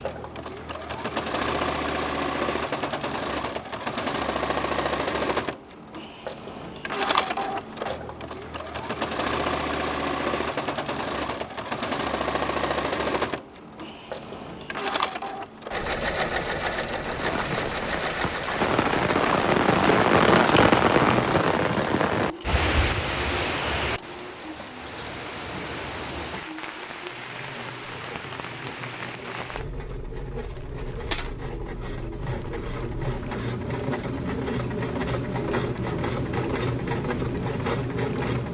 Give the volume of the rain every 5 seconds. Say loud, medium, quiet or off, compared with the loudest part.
off, off, off, loud, loud, quiet, quiet, quiet.